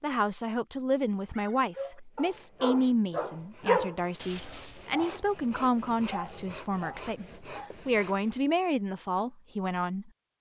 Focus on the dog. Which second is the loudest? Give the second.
4 s.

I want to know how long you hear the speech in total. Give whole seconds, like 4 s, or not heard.
10 s.